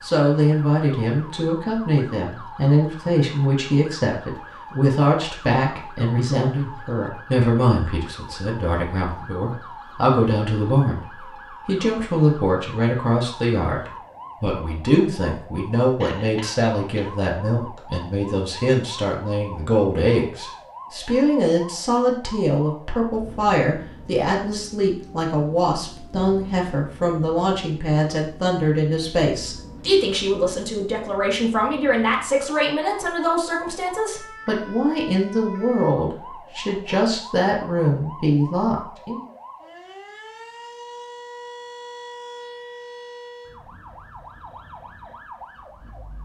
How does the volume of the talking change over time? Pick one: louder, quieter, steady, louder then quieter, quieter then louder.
steady.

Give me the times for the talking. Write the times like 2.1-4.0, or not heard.
0.0-39.2.